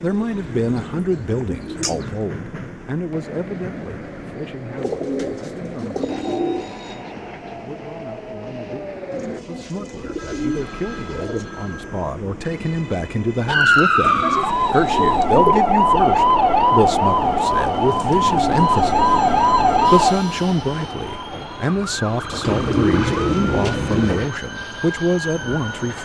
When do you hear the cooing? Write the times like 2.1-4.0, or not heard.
0.1-2.1, 4.8-6.7, 9.1-11.4, 14.0-15.6, 17.9-20.1, 22.4-24.3.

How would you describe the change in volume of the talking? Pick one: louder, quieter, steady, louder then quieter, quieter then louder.
quieter then louder.